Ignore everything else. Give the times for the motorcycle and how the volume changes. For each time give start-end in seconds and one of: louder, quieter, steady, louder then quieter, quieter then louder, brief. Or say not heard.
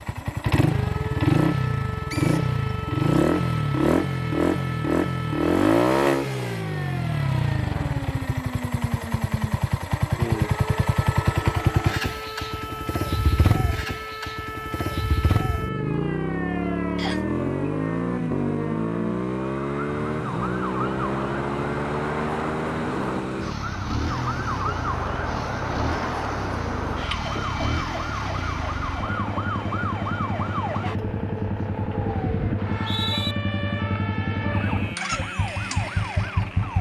0.0-36.7 quieter.